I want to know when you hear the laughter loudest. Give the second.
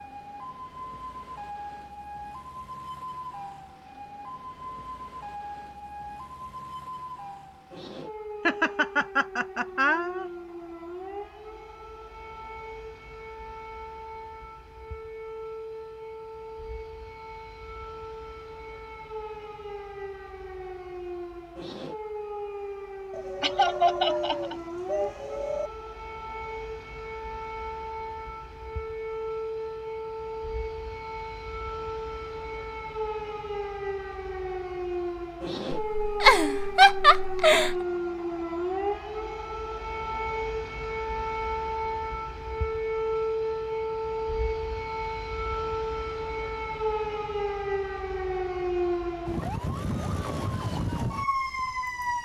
37 s.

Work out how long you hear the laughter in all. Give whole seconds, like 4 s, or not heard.
5 s.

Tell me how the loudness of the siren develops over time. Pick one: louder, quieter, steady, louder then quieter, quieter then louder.
louder.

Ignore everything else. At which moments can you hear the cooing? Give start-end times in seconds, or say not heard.
23.1-25.7.